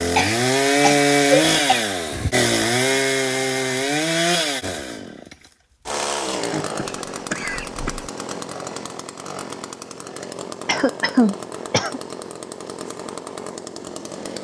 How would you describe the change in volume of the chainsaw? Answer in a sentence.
The volume of the chainsaw goes down.